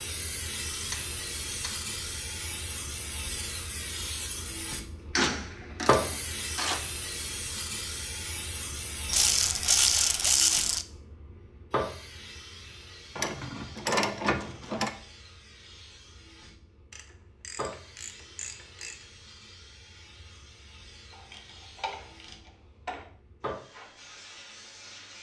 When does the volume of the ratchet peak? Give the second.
10 s.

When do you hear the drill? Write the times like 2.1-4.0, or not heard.
not heard.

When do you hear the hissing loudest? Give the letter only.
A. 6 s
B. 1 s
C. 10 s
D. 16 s
A.